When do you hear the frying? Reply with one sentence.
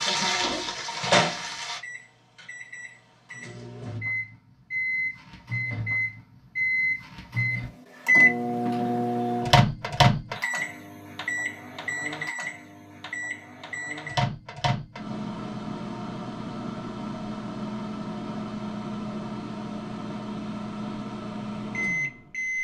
The frying can be heard from 0.0 to 1.8 s.